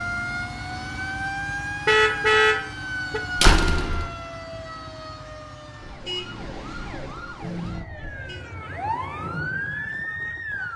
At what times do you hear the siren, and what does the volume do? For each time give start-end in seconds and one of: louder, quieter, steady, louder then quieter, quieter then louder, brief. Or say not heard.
0.0-10.7 quieter then louder.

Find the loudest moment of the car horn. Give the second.
2 s.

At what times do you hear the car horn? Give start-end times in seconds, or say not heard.
1.9-3.2, 5.8-8.4.